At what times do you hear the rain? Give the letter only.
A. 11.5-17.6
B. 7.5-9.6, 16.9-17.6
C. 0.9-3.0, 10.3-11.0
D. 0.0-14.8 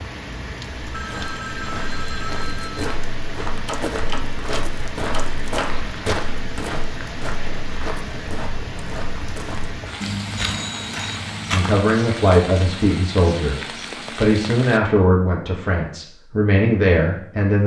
D.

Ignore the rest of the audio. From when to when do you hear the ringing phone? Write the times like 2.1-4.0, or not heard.
0.9-3.0, 10.3-11.0.